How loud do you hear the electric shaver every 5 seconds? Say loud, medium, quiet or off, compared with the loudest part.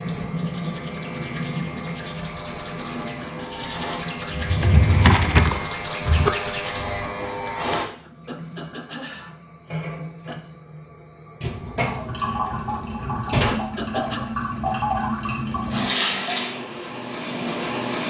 medium, loud, off, off.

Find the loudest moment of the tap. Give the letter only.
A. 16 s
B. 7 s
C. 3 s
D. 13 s
A.